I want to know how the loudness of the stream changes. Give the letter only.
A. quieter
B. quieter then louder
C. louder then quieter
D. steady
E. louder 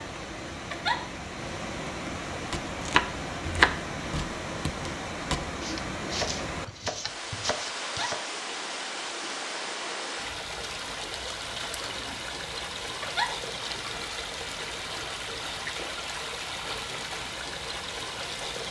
D.